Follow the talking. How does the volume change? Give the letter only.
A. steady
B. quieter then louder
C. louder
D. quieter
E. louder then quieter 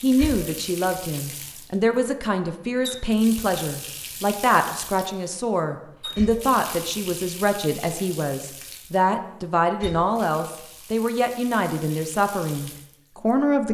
A.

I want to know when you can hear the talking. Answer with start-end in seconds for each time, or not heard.
0.0-13.6.